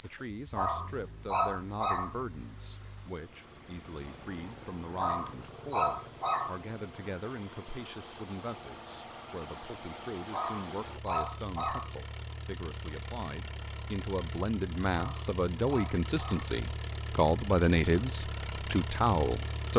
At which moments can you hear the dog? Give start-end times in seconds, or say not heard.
0.6-2.1, 5.0-6.7, 10.3-11.9, 14.9-16.6.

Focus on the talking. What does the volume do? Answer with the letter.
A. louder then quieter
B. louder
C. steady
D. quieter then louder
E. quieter
B.